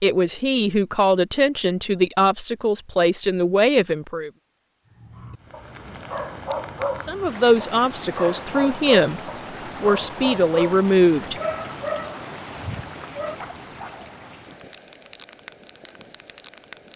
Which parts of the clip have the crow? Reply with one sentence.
You can't hear the crow here.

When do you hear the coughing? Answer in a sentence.
The coughing can't be heard in this clip.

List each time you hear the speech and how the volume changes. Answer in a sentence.
The speech can be heard from 0.0 to 4.3 s, at a steady volume; briefly from 7.0 to 9.2 s; and briefly from 9.8 to 11.3 s.